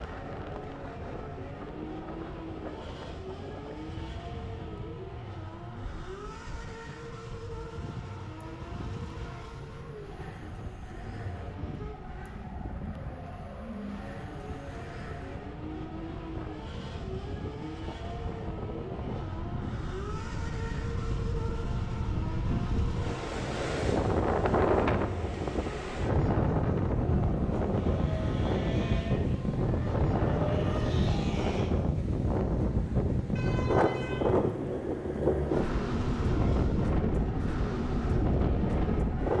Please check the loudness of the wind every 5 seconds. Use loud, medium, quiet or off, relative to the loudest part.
quiet, quiet, quiet, quiet, loud, loud, loud, loud.